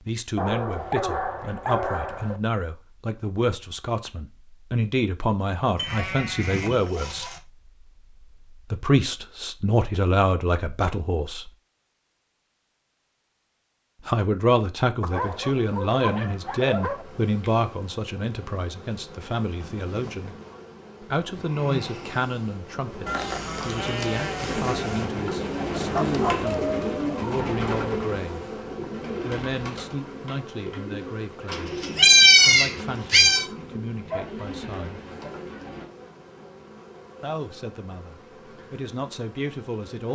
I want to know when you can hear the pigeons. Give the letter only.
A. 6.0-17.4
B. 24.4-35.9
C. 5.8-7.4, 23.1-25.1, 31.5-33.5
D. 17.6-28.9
B.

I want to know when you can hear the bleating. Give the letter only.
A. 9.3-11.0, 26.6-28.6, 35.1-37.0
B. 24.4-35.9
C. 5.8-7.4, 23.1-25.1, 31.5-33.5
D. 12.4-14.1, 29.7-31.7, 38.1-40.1
C.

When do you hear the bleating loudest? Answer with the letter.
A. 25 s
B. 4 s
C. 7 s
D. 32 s
D.